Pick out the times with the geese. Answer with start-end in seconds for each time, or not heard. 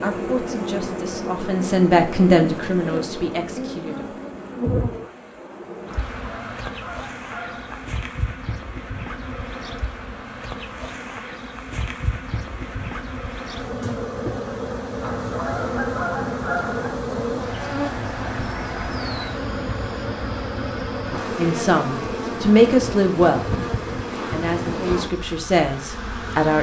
5.8-7.9, 15.0-16.9.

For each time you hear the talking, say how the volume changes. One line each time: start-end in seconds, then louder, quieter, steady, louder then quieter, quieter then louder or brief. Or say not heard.
0.0-4.2 louder then quieter
21.4-23.6 brief
24.3-26.5 brief.